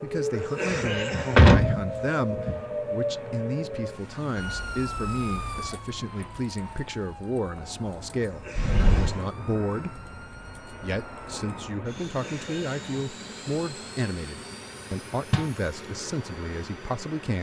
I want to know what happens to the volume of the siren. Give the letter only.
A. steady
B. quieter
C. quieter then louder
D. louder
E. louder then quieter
B.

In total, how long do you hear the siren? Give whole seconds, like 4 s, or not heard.
12 s.